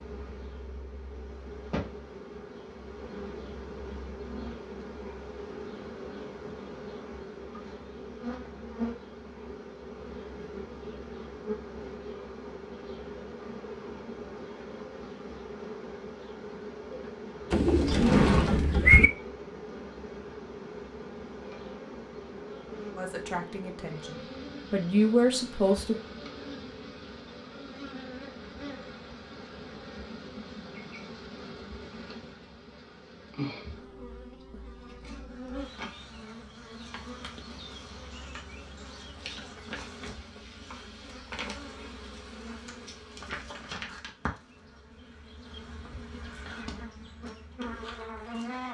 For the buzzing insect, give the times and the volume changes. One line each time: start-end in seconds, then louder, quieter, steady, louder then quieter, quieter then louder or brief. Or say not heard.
0.0-48.6 steady.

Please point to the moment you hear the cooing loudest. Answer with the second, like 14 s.
19 s.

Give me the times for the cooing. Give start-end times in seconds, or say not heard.
17.5-19.1.